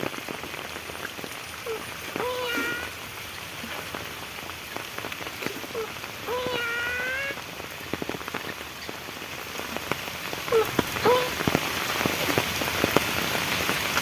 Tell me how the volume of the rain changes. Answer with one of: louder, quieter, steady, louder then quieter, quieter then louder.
louder.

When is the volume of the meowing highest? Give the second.
11 s.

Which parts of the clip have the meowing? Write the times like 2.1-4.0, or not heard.
1.6-3.0, 5.7-7.3, 10.5-11.3.